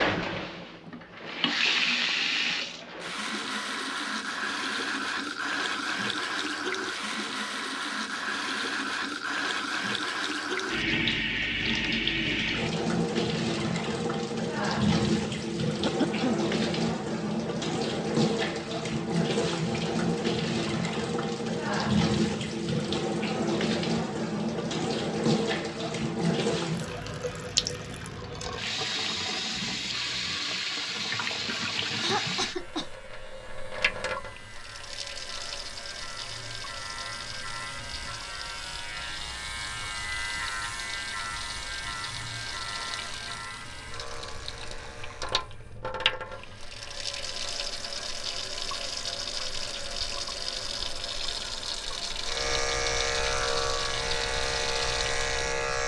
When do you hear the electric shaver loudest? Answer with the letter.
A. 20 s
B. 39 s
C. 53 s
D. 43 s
C.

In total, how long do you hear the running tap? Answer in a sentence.
You can hear the running tap for 56 seconds altogether.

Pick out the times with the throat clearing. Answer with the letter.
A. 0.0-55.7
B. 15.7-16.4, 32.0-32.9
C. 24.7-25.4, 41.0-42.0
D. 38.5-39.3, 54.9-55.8
B.